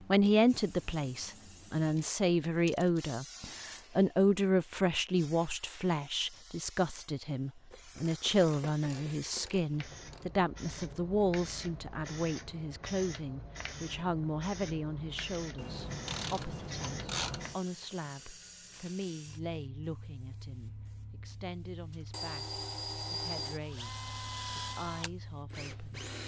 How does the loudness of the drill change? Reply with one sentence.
The loudness of the drill goes down.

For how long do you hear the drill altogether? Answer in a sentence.
The drill can be heard for 4 seconds in total.